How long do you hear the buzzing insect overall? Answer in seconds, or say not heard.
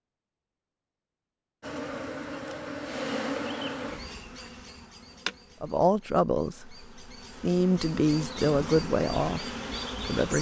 9 s.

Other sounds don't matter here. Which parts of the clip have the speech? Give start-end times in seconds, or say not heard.
5.6-10.3.